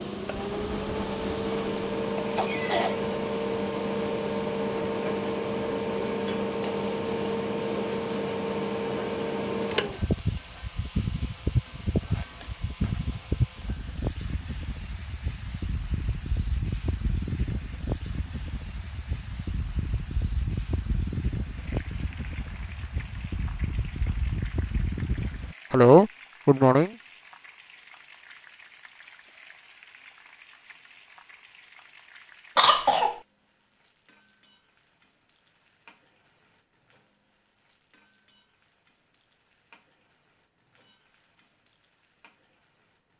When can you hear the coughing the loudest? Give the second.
26 s.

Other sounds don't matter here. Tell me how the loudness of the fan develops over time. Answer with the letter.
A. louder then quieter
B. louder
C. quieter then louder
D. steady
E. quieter
E.